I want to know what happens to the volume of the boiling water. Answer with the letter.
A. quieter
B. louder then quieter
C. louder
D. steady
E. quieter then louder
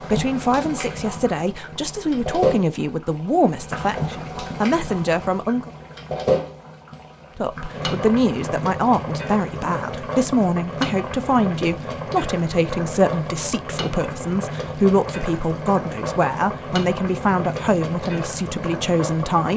D.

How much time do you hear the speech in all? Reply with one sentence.
The speech can be heard for 18 seconds in total.